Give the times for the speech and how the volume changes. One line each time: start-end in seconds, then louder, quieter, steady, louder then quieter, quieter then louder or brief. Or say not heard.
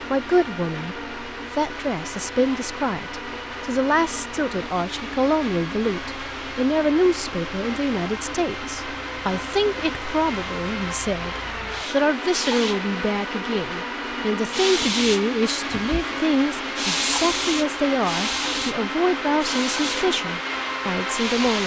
0.1-21.6 steady.